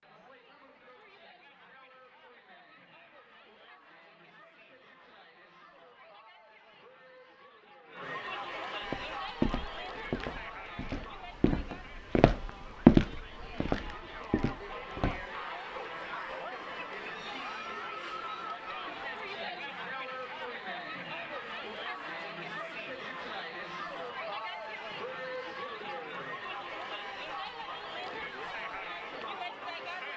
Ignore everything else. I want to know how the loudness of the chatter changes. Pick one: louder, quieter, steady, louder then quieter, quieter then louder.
louder.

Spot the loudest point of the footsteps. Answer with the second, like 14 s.
13 s.